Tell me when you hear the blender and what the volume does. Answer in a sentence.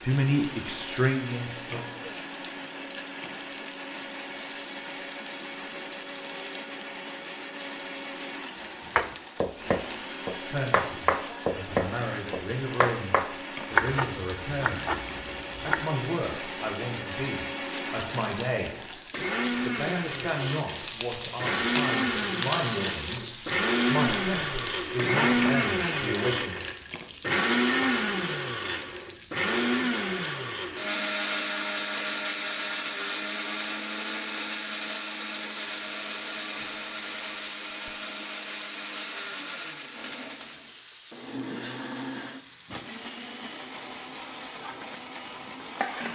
You can hear the blender from 0.0 to 46.0 s, getting louder then quieter.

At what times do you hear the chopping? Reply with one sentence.
The chopping can be heard from 8.8 to 15.8 s.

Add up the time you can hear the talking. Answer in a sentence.
The talking can be heard for 17 seconds in total.